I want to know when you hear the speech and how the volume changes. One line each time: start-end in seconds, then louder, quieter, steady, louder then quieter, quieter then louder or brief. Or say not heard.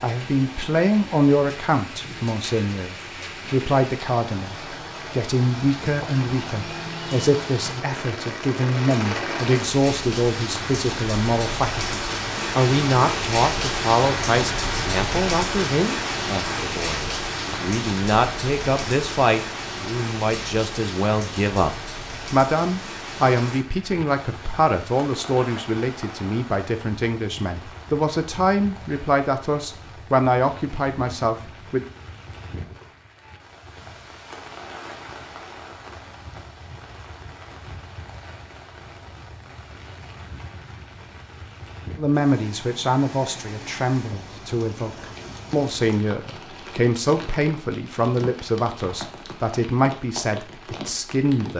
0.0-31.9 steady
42.0-51.5 steady.